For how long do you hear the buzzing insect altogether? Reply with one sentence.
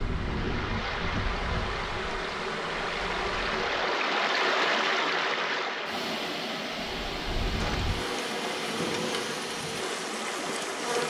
You can hear the buzzing insect for 8 seconds altogether.